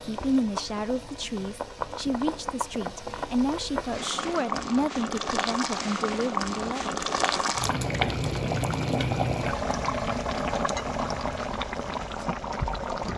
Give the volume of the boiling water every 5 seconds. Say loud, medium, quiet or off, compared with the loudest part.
medium, loud, loud.